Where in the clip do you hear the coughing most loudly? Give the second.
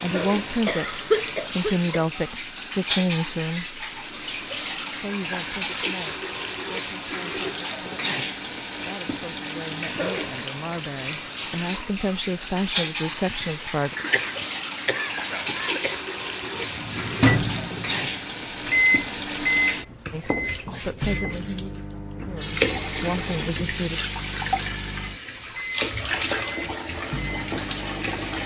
1 s.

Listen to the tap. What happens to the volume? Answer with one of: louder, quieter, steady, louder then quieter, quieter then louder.
steady.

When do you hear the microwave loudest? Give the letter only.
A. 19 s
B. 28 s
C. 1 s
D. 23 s
A.